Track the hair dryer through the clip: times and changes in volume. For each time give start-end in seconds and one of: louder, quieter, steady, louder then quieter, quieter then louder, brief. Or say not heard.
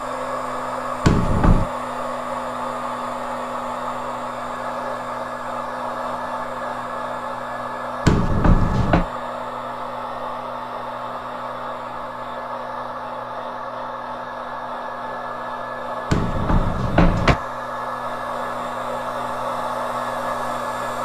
0.0-21.0 steady.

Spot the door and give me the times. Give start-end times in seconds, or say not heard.
1.1-1.7, 8.1-9.1, 16.1-17.4.